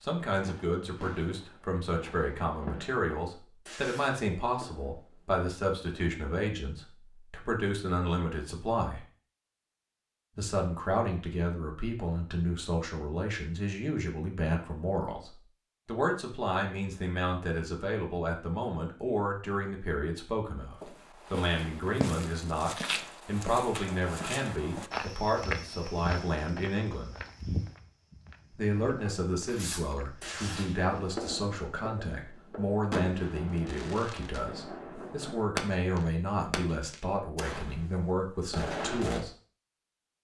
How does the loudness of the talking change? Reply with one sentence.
The loudness of the talking stays about the same.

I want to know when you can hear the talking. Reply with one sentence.
The talking can be heard from 0.0 to 9.0 s, from 10.3 to 27.1 s and from 28.5 to 39.3 s.